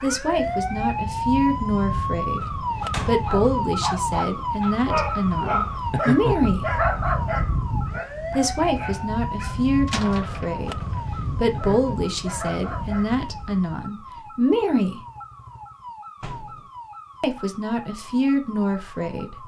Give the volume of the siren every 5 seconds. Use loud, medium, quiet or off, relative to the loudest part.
loud, loud, medium, quiet.